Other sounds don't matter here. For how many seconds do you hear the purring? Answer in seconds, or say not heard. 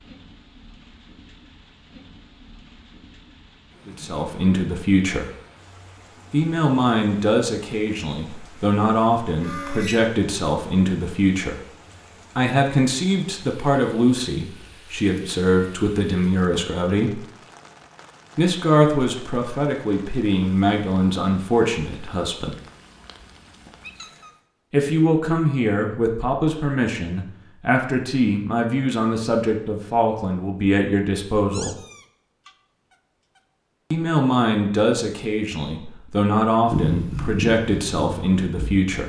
2 s.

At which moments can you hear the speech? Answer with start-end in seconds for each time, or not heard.
3.9-5.3, 6.3-11.6, 12.3-17.2, 18.4-22.6, 24.7-31.8, 33.9-39.0.